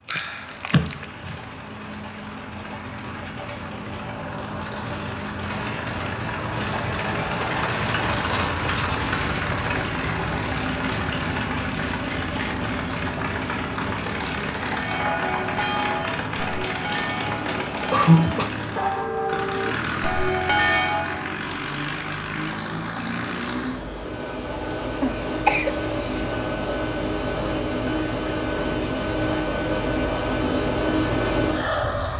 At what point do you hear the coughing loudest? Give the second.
18 s.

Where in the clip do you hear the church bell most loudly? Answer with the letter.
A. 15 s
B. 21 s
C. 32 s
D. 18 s
B.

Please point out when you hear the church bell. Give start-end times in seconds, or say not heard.
14.7-21.3.